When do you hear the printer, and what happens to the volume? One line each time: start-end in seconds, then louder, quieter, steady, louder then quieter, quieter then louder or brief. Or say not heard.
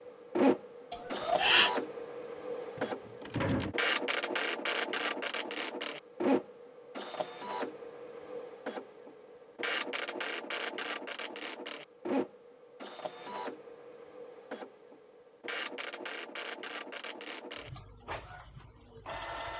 0.0-19.5 quieter.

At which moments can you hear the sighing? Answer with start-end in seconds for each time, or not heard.
0.9-1.7.